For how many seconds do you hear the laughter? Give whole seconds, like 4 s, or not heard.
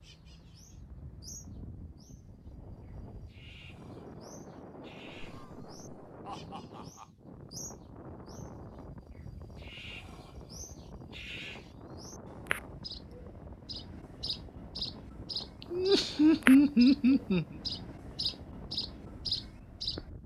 4 s.